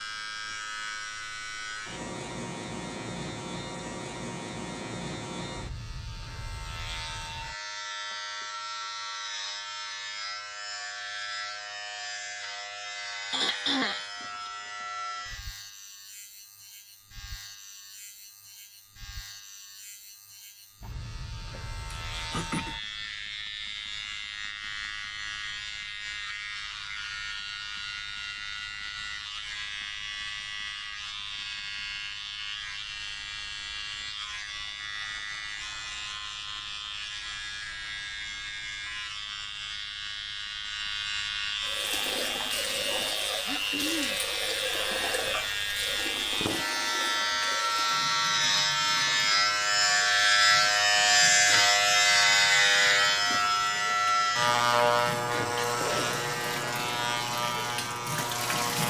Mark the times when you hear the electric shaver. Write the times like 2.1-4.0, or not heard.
0.0-58.8.